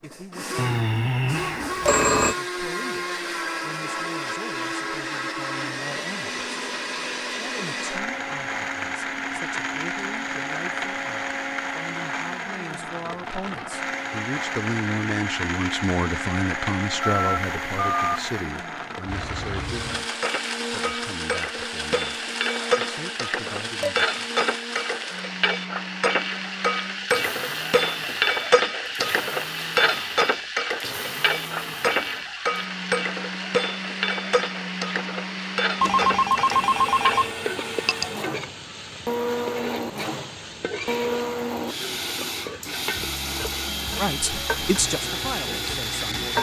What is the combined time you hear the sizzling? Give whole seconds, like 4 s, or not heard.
27 s.